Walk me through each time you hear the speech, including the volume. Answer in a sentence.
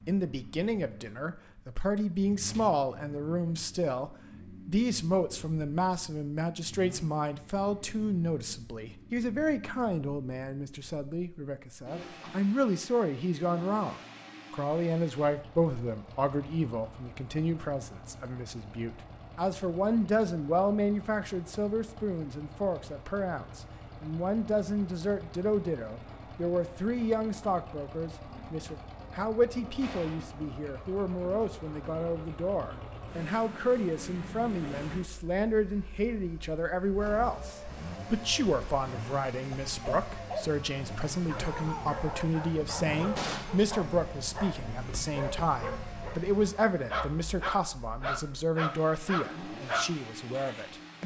The speech can be heard from 0.1 to 51.0 s, at a steady volume.